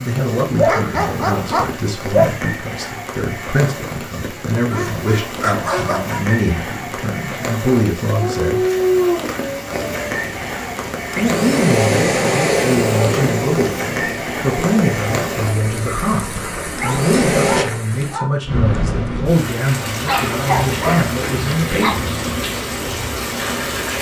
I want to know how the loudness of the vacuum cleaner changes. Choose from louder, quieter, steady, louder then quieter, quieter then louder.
louder then quieter.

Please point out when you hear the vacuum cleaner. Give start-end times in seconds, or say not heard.
9.7-17.6.